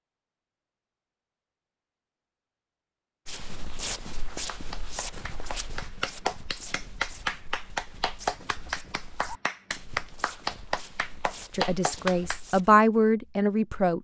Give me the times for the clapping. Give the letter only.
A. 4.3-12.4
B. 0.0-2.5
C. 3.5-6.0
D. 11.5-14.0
A.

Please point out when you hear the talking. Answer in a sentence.
The talking can be heard from 11.5 to 14.0 s.